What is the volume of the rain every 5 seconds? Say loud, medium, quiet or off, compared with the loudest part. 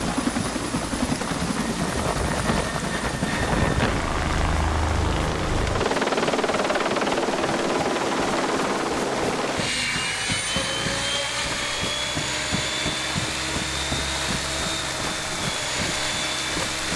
medium, medium, loud, loud.